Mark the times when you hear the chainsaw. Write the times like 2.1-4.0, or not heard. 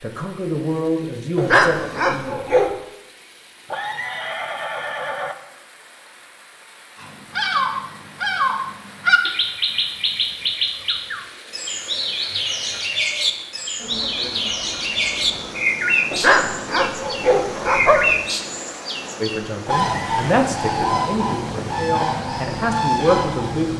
not heard.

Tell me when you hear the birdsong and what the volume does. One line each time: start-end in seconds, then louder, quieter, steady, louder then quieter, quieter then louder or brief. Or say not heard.
7.0-23.7 steady.